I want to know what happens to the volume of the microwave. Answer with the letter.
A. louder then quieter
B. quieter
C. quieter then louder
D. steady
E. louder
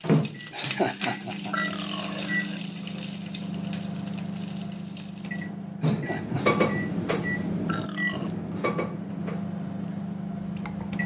D.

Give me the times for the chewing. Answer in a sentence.
The chewing can't be heard in this clip.